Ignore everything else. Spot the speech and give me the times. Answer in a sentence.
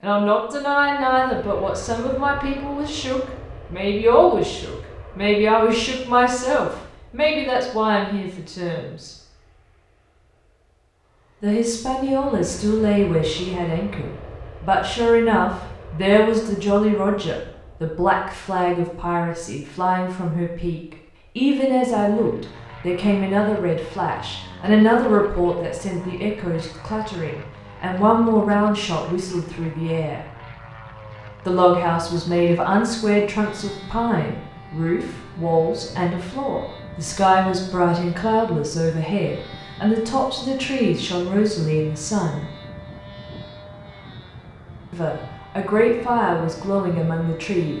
The speech can be heard from 0.0 to 9.1 s, from 11.4 to 30.2 s, from 31.4 to 42.5 s and from 44.9 to 47.7 s.